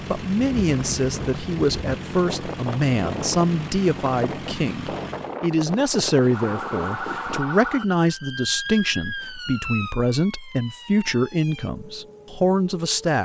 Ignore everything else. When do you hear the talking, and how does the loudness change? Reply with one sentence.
The talking can be heard from 0.1 to 13.2 s, at a steady volume.